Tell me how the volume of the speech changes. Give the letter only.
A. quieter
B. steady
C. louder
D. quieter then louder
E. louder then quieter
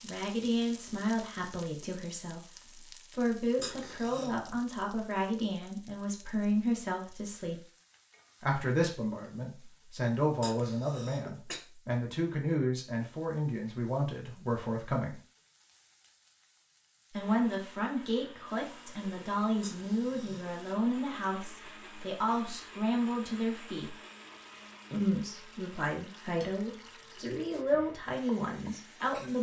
B.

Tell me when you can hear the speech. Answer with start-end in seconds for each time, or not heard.
0.0-7.6, 8.4-15.2, 17.1-23.9, 24.9-29.3.